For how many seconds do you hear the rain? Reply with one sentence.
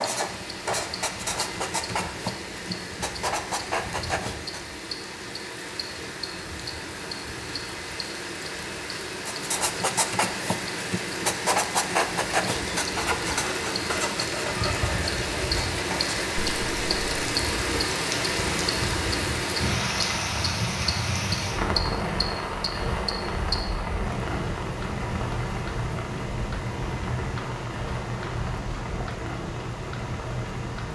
You can hear the rain for 31 seconds altogether.